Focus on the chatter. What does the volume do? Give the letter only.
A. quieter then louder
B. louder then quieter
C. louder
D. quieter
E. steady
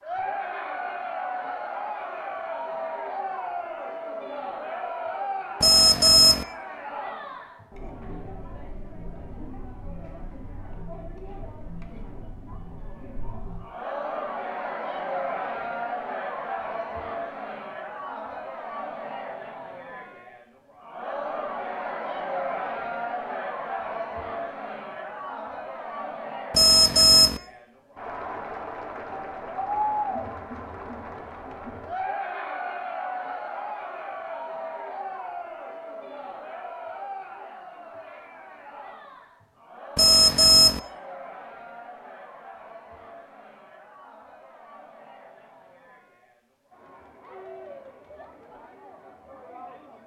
D.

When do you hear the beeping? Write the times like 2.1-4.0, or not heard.
5.6-6.5, 26.5-27.4, 40.0-40.8.